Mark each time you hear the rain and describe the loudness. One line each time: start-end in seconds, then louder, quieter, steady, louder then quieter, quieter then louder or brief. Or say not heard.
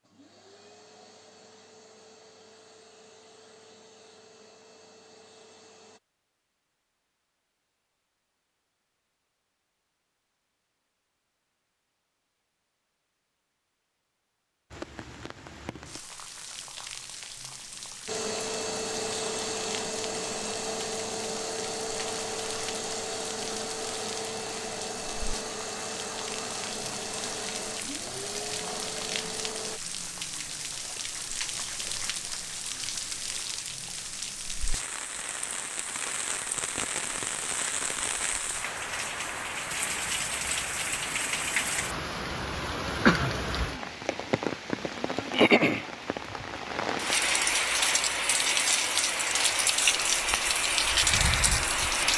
14.7-52.1 louder.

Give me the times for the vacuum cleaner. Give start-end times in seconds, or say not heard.
0.0-6.0, 18.1-29.8.